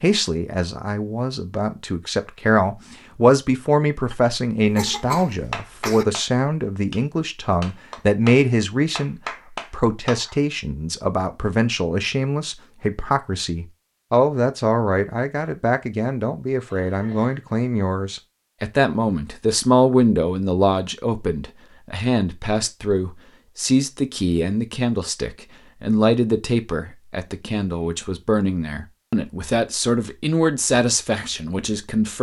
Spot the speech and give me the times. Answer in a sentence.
The speech can be heard from 0.0 to 32.1 s.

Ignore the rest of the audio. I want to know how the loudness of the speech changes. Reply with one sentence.
The volume of the speech stays about the same.